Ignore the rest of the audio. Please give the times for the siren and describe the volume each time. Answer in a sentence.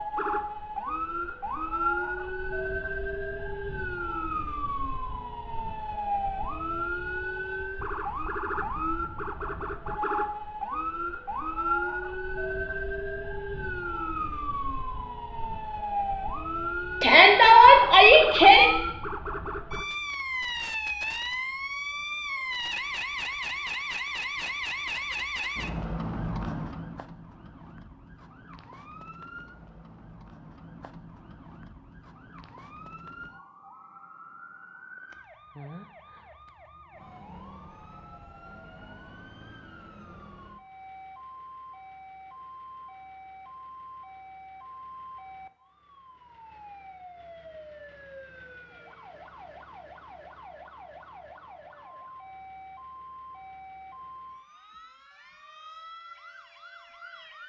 You can hear the siren from 0.0 to 57.4 s, getting quieter.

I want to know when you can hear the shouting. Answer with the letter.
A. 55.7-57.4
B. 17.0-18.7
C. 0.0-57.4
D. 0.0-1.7
B.